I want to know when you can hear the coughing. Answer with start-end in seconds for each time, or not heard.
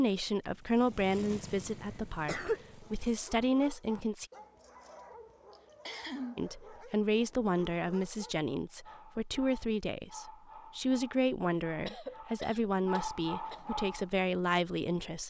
1.1-2.6, 5.5-6.4, 11.8-13.7.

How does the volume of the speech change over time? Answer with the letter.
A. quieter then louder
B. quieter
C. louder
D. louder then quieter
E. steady
E.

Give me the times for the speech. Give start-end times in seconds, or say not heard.
0.0-4.2, 6.3-15.2.